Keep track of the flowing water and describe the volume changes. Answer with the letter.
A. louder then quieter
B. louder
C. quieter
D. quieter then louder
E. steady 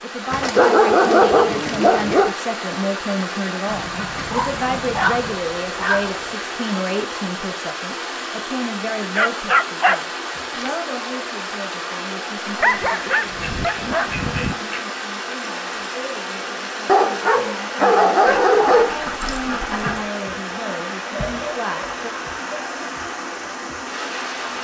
E.